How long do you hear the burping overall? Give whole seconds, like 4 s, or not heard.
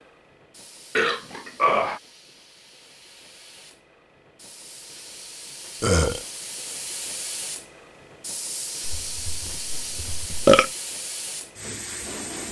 3 s.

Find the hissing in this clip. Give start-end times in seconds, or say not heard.
0.0-12.4.